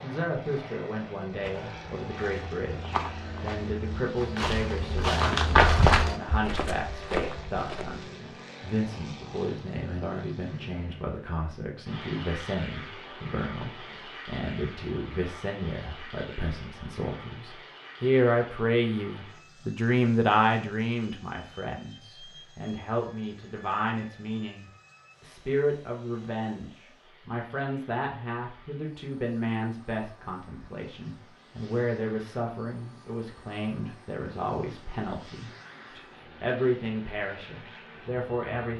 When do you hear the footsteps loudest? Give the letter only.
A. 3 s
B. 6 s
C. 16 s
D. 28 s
B.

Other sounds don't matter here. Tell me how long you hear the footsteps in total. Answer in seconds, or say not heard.
7 s.